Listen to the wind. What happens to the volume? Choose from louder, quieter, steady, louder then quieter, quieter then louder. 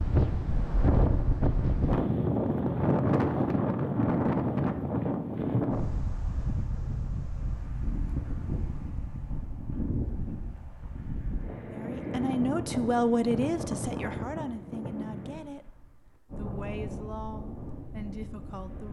quieter.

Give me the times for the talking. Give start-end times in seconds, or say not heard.
11.7-15.7, 16.4-18.8.